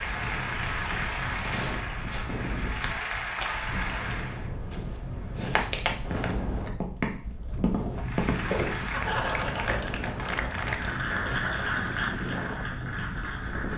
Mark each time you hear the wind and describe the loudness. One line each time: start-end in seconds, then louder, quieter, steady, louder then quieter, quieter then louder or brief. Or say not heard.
0.0-13.7 steady.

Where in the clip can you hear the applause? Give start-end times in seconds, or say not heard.
0.0-4.5, 8.0-13.7.